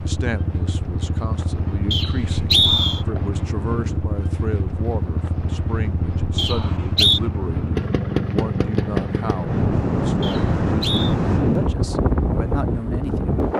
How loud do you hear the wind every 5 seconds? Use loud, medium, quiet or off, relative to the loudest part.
quiet, medium, loud.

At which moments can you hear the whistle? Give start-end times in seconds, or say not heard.
1.9-3.0, 6.3-7.2, 10.2-11.2.